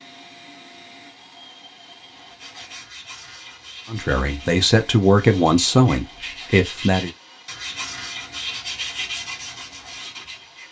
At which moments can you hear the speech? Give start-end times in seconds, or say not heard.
3.9-7.1.